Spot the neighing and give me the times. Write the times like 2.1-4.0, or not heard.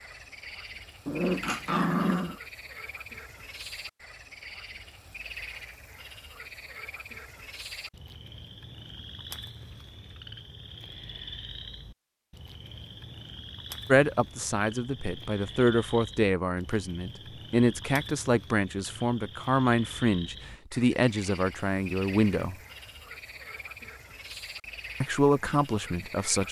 not heard.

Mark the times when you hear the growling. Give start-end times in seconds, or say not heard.
1.1-2.4.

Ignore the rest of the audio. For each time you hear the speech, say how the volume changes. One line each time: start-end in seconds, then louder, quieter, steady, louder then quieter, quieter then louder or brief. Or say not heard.
13.8-22.6 steady
25.0-26.4 brief.